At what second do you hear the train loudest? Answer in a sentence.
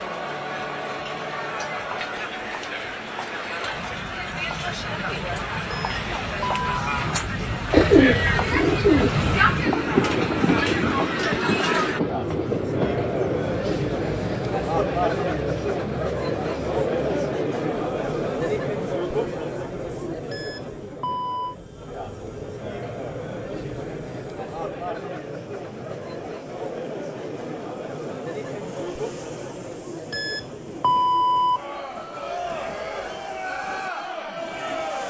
The volume of the train peaks at 10 seconds.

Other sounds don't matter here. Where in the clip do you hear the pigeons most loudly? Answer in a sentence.
The loudest moment of the pigeons is at 8 seconds.